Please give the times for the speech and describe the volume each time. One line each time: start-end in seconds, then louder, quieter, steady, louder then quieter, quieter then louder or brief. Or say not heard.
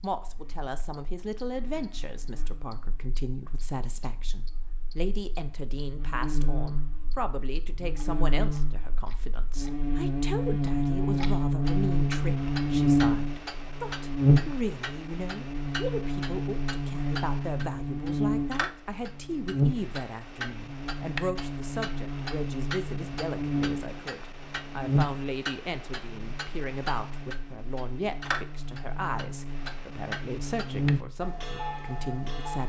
0.0-32.6 steady.